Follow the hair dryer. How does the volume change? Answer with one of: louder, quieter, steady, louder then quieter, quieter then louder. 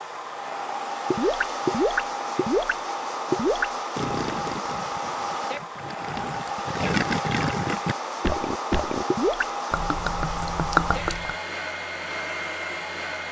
steady.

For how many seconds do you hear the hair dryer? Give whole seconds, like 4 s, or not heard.
13 s.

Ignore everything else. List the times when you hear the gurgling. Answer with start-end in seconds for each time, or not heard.
1.1-11.3.